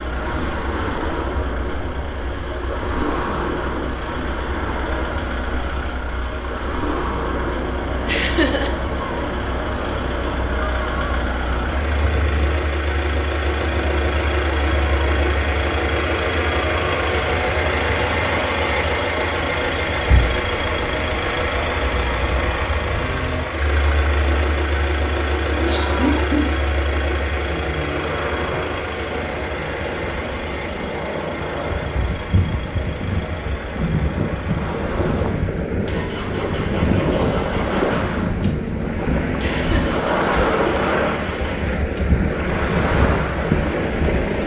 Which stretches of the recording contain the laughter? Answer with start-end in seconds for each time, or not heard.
8.1-8.7, 25.5-26.4, 39.4-40.0.